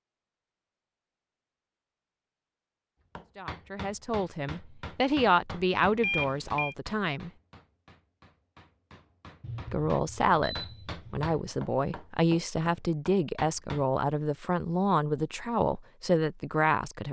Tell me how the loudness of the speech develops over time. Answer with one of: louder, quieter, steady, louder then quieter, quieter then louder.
steady.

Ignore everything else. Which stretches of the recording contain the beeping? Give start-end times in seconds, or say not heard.
6.0-6.8, 9.4-11.3.